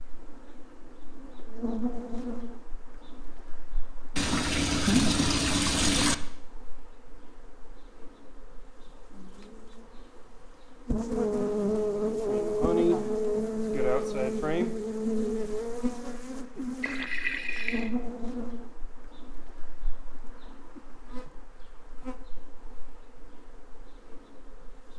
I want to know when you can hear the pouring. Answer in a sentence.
The pouring can be heard from 4.2 to 6.2 s and from 16.8 to 17.9 s.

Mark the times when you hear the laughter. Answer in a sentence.
You can't hear the laughter here.